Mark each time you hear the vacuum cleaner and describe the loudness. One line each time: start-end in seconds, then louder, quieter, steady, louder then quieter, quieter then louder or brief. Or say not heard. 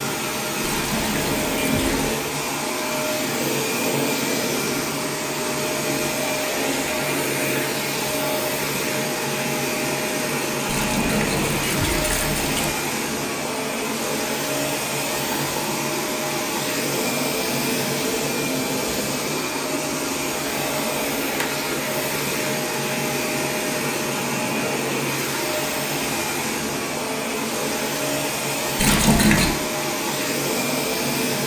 0.0-31.4 steady.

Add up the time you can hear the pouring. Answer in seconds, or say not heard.
4 s.